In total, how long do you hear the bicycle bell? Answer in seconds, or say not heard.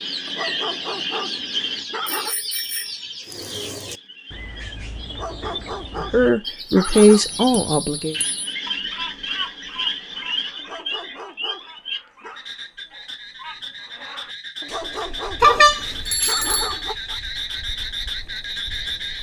4 s.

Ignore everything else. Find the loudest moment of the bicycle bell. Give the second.
16 s.